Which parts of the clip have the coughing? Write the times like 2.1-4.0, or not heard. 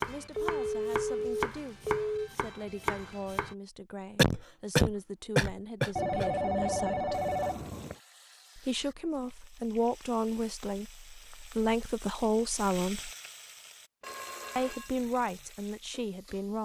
4.2-6.2.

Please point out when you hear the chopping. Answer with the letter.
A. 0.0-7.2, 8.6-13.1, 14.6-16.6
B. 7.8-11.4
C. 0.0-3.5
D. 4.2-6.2
C.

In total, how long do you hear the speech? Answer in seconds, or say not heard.
14 s.